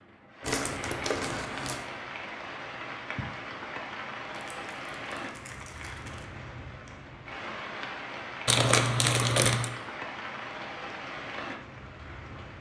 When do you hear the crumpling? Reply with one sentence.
The crumpling can be heard from 0.4 to 1.9 s, from 4.3 to 6.2 s and from 8.4 to 9.7 s.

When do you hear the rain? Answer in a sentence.
The rain can be heard from 0.0 to 12.5 s.